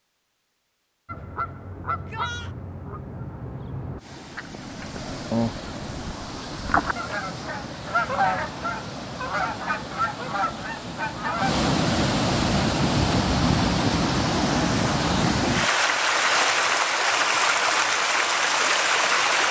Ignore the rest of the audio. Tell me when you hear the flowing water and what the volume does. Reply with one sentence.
You can hear the flowing water from 4.0 to 19.4 s, getting louder.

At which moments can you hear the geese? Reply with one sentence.
You can hear the geese from 1.1 to 11.5 s.